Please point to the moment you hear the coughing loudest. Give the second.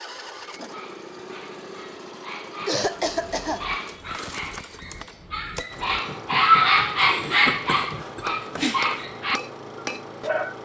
3 s.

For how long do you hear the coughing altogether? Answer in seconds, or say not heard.
3 s.